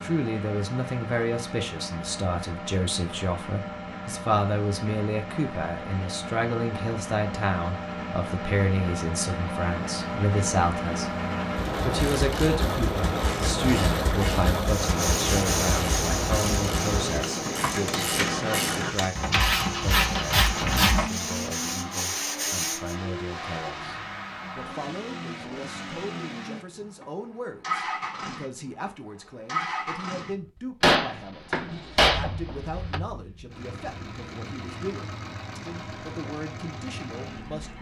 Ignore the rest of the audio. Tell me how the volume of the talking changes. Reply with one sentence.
The volume of the talking goes down.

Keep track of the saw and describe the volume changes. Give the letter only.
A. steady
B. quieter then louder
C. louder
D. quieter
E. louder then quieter
B.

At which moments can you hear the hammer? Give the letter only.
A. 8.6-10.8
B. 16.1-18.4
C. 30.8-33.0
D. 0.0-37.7
C.